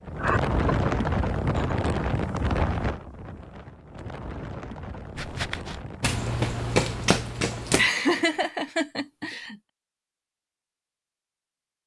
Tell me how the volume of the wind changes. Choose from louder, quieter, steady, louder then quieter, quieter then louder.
quieter.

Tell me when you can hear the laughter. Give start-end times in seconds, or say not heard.
0.2-1.8, 7.8-9.6.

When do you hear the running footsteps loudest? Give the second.
7 s.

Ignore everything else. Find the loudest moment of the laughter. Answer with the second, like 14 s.
8 s.